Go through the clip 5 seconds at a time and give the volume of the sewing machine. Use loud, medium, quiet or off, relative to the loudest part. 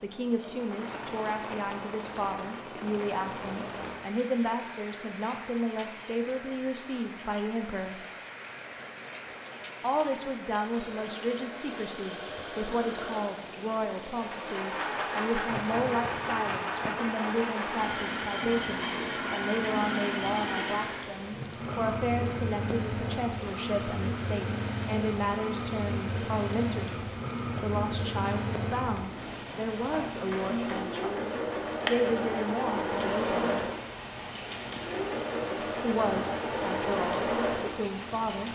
quiet, quiet, medium, loud, loud, loud, loud, loud.